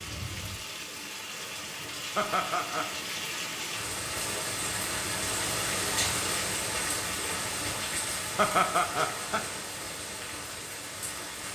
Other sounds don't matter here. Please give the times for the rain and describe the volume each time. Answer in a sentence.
You can hear the rain from 0.0 to 11.4 s, getting louder then quieter.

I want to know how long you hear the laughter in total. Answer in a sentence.
The laughter can be heard for 2 seconds in total.